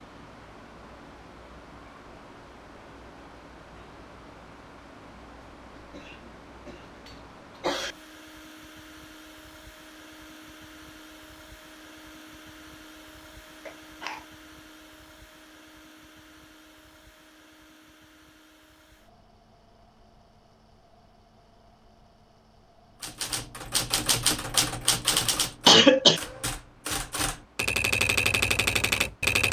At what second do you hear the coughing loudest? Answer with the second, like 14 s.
26 s.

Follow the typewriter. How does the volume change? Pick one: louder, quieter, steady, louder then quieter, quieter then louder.
quieter then louder.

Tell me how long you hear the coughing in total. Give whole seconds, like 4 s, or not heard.
3 s.